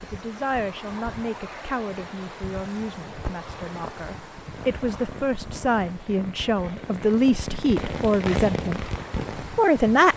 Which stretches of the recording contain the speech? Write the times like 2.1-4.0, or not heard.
0.0-8.8, 9.6-10.1.